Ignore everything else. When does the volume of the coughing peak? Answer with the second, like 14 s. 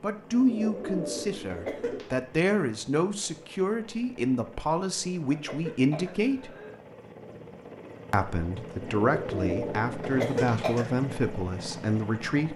10 s.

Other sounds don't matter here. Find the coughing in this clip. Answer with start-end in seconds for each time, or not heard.
1.5-2.2, 5.3-6.8, 10.0-10.9.